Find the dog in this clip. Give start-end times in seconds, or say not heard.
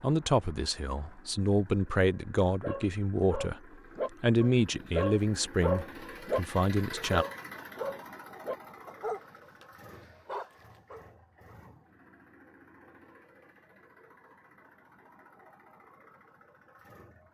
2.6-11.1.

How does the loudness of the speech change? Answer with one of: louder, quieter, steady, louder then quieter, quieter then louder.
steady.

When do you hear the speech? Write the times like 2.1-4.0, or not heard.
0.0-3.6, 4.2-7.2.